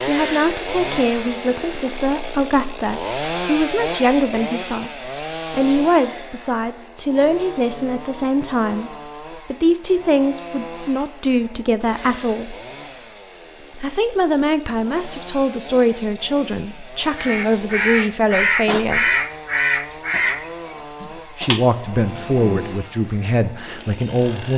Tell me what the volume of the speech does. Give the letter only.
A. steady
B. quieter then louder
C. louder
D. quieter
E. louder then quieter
A.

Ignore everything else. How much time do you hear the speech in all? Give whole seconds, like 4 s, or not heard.
21 s.